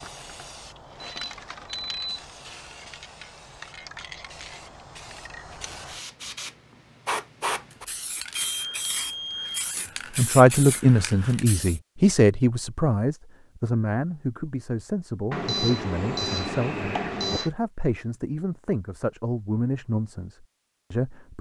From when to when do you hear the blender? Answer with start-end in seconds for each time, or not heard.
not heard.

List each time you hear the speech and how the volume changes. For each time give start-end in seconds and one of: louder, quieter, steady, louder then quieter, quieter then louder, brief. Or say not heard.
10.2-21.3 quieter.